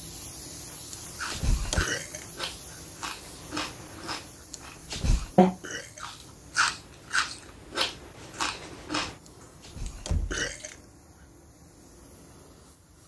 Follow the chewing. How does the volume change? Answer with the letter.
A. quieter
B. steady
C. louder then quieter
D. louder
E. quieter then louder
C.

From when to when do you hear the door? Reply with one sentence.
The door can be heard from 0.9 to 1.9 s, from 4.5 to 5.3 s and from 9.6 to 10.7 s.